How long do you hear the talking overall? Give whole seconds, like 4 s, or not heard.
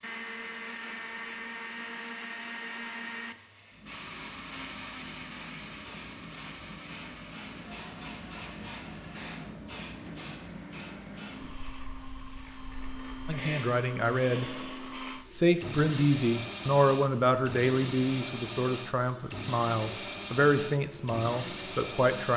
8 s.